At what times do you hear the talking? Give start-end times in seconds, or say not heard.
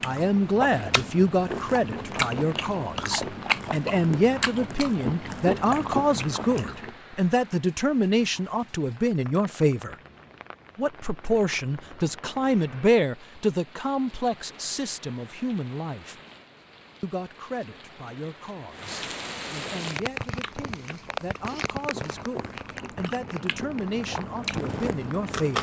0.0-9.9, 10.8-16.1, 17.0-25.5.